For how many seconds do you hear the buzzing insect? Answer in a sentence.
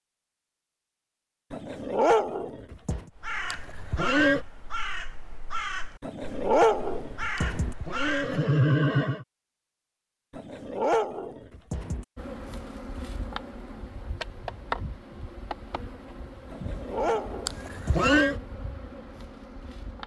The buzzing insect can be heard for 8 seconds in total.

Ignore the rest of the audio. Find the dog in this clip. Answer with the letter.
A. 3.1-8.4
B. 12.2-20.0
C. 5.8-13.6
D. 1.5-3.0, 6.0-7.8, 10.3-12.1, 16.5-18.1
D.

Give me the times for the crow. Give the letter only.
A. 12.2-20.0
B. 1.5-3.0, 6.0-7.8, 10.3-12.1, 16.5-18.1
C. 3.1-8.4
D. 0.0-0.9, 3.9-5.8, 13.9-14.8
C.